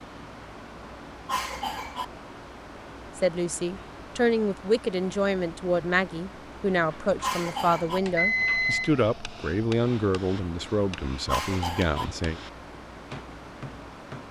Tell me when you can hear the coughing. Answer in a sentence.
The coughing can be heard from 1.2 to 2.0 s, from 7.2 to 8.0 s and from 11.2 to 12.1 s.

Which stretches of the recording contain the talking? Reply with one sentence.
The talking can be heard from 3.1 to 12.4 s.